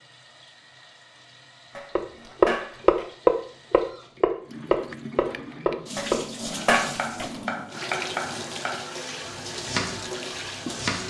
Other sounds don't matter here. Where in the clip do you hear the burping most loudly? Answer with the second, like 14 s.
7 s.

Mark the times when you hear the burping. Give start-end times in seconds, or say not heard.
1.8-3.0, 6.0-7.3.